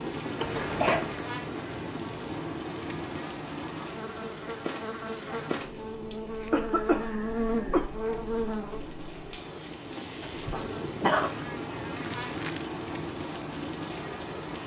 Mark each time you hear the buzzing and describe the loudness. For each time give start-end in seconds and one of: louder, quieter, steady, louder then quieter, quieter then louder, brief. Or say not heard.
0.0-14.6 louder then quieter.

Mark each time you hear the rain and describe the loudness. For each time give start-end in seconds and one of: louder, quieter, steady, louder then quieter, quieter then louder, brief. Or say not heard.
0.0-14.6 quieter then louder.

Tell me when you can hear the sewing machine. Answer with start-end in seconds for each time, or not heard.
not heard.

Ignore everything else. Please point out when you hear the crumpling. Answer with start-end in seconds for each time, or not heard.
11.9-12.7.